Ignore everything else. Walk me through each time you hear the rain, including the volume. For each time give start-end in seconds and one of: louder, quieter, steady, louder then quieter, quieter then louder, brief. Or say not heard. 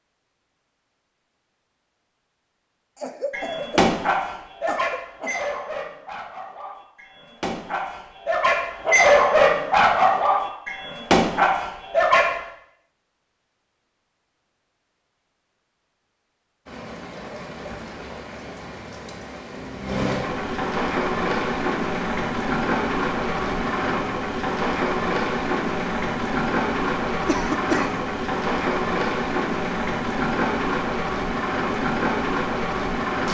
16.6-33.2 louder.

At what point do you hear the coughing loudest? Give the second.
28 s.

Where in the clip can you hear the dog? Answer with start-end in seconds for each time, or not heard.
3.3-12.4.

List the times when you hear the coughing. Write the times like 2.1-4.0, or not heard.
3.0-5.4, 27.2-28.1.